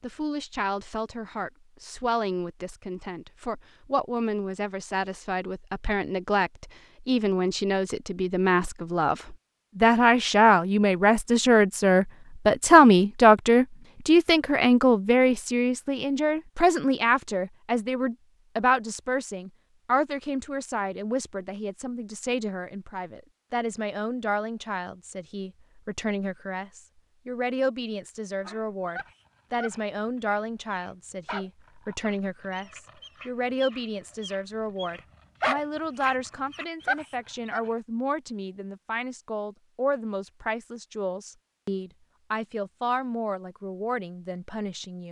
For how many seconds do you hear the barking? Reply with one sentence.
You can hear the barking for 9 seconds altogether.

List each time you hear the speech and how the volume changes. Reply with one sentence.
You can hear the speech from 0.0 to 45.0 s, getting louder then quieter.